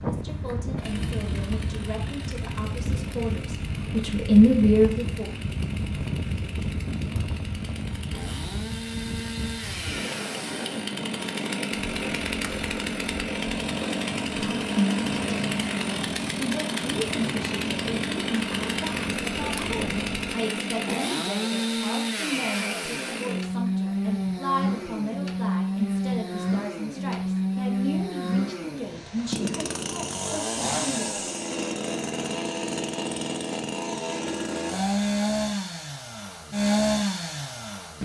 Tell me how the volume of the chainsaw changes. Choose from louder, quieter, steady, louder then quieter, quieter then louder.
louder.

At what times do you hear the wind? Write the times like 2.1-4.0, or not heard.
0.0-20.4.